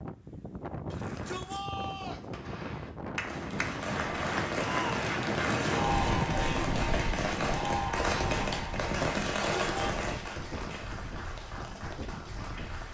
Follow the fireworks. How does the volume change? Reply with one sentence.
The volume of the fireworks goes up.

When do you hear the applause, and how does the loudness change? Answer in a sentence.
The applause can be heard from 3.1 to 12.8 s, getting quieter.